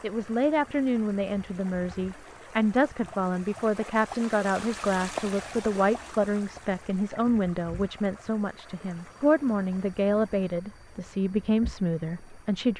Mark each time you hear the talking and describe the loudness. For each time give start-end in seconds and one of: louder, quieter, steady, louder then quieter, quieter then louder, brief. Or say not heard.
0.0-12.7 steady.